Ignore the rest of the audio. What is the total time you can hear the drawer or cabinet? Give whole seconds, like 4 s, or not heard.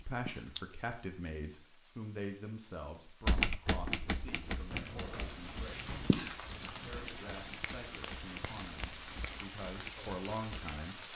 3 s.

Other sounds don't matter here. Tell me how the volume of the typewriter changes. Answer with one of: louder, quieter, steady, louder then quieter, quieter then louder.
quieter.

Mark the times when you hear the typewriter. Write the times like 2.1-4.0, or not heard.
3.2-10.8.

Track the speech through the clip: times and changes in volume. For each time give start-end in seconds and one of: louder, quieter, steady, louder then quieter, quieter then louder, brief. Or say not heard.
0.0-11.1 quieter then louder.